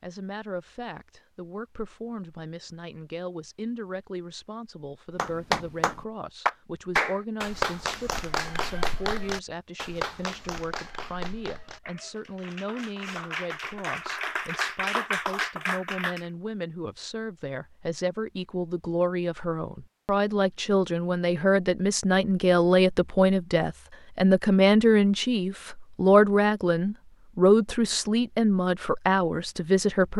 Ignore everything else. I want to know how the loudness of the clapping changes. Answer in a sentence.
The loudness of the clapping goes down, then up.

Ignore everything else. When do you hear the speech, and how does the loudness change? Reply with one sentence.
You can hear the speech from 0.0 to 30.1 s, getting louder.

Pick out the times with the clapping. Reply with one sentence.
You can hear the clapping from 5.2 to 16.2 s.